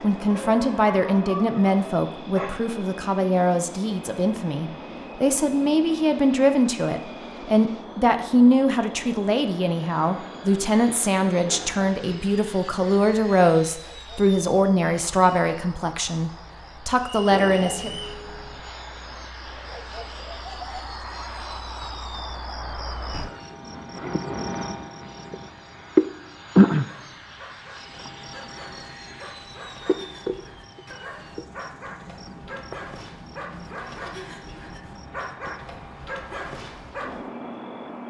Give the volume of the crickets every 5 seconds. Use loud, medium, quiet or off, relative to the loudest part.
quiet, quiet, quiet, quiet, medium, loud, quiet, quiet.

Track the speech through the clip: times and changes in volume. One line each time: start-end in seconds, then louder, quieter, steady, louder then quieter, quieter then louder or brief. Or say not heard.
0.0-17.9 steady.